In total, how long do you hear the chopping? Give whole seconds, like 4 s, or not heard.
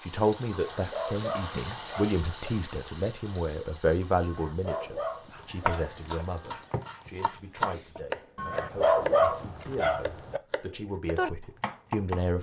7 s.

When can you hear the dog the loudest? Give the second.
9 s.